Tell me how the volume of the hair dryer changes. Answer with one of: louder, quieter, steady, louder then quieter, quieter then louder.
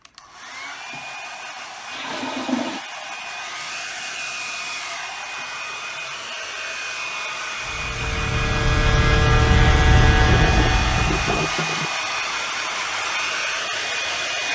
louder.